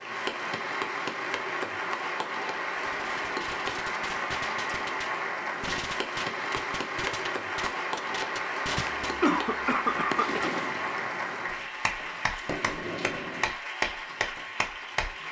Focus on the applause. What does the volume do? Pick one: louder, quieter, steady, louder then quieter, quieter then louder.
steady.